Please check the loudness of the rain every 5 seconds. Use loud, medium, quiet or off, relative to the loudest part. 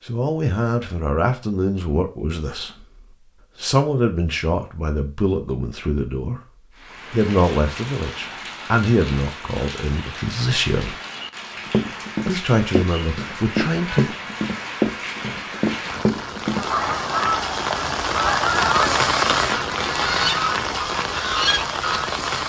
off, medium, medium, loud, loud.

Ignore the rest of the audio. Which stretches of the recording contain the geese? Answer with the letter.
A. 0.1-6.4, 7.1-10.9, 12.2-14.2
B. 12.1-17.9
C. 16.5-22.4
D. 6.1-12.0
C.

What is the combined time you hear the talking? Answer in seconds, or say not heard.
12 s.